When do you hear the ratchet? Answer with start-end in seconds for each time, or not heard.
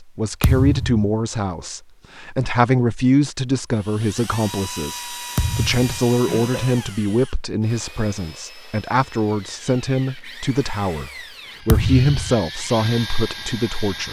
not heard.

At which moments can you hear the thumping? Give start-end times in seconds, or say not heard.
0.4-1.1, 5.3-5.9, 11.7-12.4.